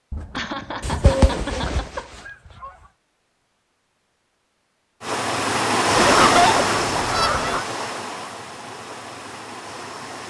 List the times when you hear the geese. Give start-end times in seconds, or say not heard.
0.1-2.7, 6.0-7.7.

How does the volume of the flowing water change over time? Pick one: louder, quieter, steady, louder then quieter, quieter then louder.
quieter.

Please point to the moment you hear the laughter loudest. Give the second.
6 s.